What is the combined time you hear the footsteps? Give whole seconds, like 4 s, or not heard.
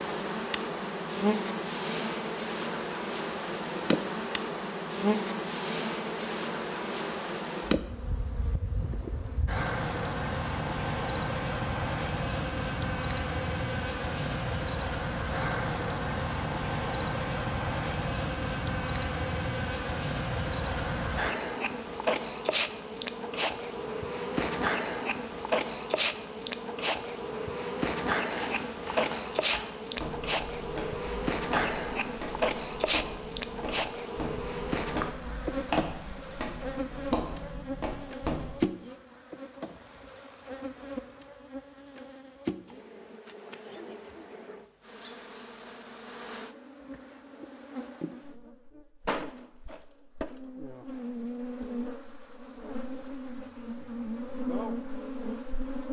10 s.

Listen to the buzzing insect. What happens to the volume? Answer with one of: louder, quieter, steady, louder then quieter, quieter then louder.
quieter.